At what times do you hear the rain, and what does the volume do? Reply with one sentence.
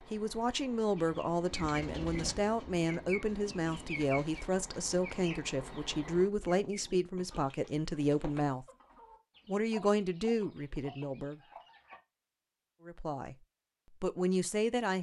The rain can't be heard in this clip.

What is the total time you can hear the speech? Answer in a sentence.
You can hear the speech for 12 seconds altogether.